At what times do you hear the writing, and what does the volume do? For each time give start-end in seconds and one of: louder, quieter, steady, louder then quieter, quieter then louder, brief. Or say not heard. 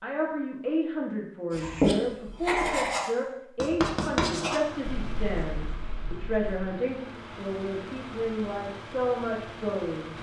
1.5-6.6 quieter.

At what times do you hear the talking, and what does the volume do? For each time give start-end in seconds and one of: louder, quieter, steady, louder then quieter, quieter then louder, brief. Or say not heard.
0.0-10.1 steady.